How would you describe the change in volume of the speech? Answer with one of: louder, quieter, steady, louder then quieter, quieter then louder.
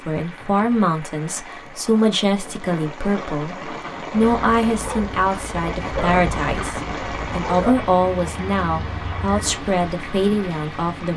steady.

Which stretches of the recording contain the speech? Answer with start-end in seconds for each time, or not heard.
0.0-11.1.